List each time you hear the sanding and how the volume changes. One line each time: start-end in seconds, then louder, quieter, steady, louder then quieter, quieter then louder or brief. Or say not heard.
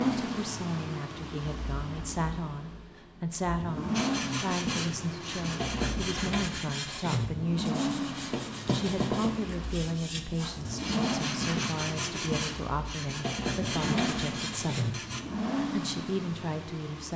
3.9-15.2 steady.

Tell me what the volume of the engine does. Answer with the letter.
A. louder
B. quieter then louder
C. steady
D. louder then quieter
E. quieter
A.